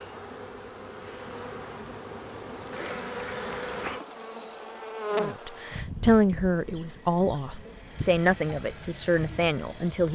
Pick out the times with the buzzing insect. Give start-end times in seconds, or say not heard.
0.0-10.1.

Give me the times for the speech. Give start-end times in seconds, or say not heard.
5.2-10.1.